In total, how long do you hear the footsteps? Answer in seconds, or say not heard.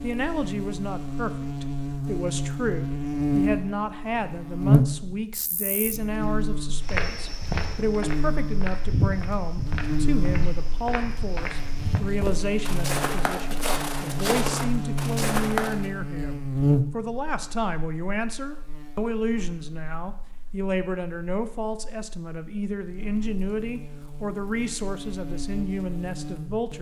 9 s.